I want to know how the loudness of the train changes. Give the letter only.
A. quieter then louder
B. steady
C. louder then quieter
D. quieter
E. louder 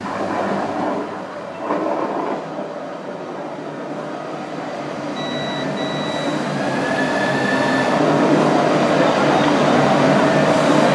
A.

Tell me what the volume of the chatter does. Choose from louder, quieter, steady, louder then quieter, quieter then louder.
louder.